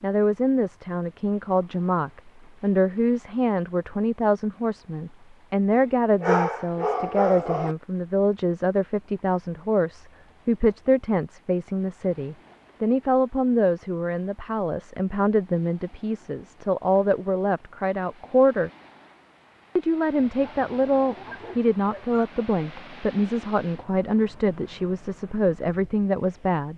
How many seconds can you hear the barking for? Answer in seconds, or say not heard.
4 s.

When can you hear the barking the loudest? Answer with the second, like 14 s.
6 s.